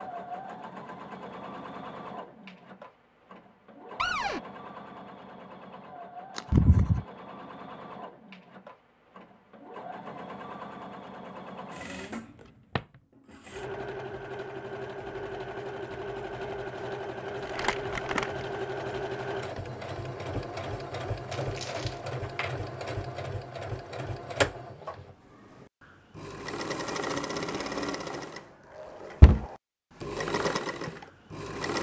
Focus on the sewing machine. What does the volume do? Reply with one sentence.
The volume of the sewing machine goes up.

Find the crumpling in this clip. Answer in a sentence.
You can hear the crumpling from 6.3 to 7.0 s, from 17.6 to 18.3 s and from 21.3 to 21.9 s.